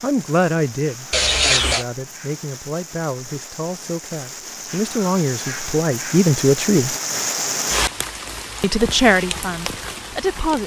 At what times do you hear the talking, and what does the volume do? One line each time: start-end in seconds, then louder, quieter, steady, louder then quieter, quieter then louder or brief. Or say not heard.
0.0-6.9 quieter then louder
8.6-10.6 brief.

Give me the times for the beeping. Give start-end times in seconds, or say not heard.
1.1-1.9.